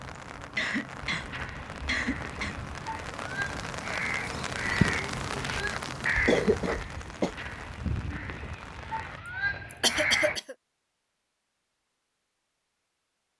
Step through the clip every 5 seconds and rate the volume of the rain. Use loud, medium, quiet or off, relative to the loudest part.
loud, loud, off.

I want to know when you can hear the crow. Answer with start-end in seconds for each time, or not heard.
1.1-10.3.